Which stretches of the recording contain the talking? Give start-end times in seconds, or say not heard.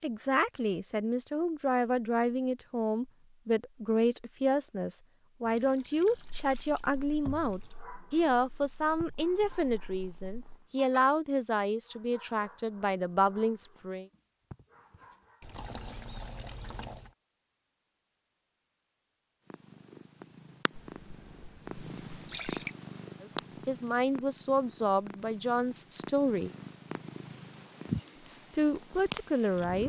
0.0-14.1, 23.2-26.5, 28.5-29.8.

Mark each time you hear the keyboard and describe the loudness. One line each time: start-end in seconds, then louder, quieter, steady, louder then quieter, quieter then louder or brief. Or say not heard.
not heard.